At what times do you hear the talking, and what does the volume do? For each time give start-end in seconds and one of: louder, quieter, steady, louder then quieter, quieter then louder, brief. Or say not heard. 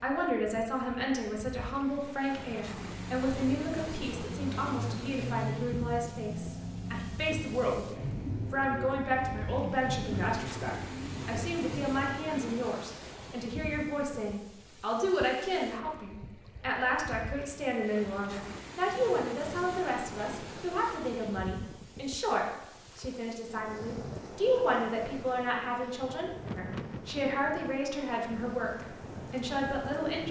0.0-30.2 steady.